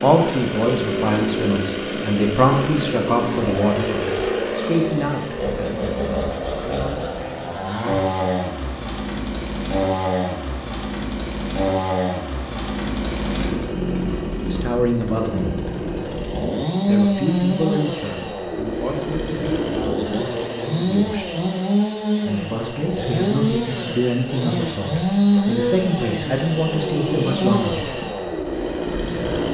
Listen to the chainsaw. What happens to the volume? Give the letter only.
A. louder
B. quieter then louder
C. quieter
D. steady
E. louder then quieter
D.